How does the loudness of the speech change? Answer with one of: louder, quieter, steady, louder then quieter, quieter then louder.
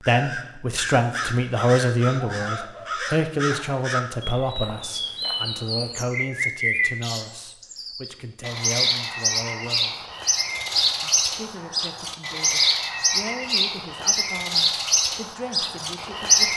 quieter.